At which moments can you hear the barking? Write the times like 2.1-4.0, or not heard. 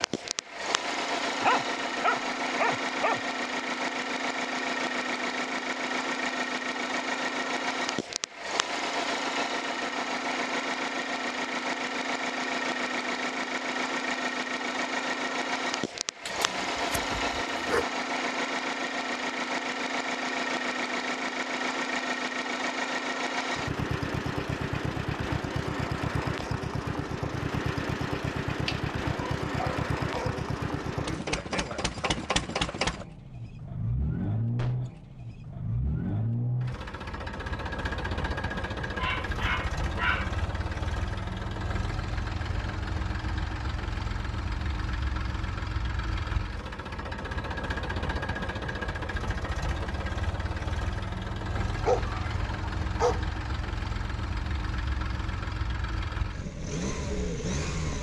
1.4-3.2, 16.2-17.9, 28.6-30.4, 39.0-40.6, 51.5-53.2.